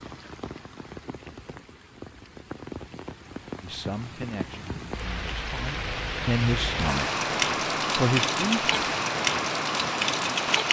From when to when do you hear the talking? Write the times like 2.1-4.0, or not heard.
3.6-7.1, 8.0-8.7.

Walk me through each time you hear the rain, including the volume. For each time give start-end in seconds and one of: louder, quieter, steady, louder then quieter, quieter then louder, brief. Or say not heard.
0.0-10.6 louder.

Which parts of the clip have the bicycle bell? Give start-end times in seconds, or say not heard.
not heard.